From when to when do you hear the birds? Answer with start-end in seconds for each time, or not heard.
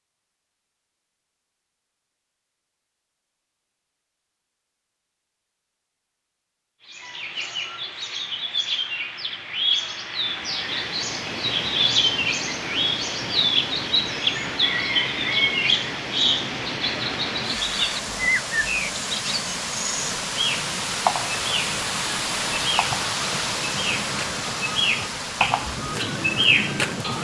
6.8-27.1.